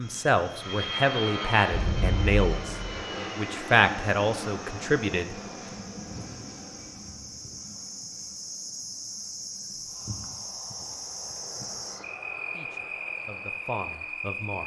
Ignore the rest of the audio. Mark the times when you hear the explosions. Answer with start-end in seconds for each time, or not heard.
1.7-3.0.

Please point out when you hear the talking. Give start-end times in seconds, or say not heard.
0.0-5.8, 12.6-14.6.